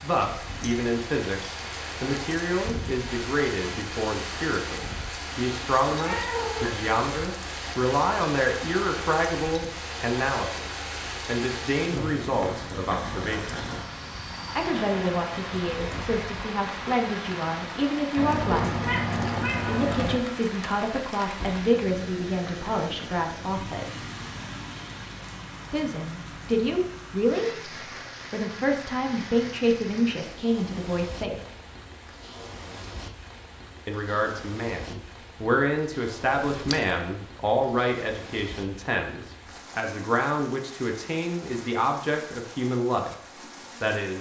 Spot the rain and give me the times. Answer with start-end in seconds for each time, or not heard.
0.0-44.1.